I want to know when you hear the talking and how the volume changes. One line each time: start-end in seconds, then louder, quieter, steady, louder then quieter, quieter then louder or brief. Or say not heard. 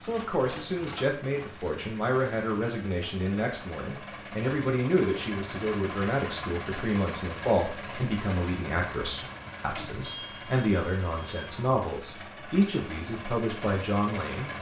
0.0-14.5 steady.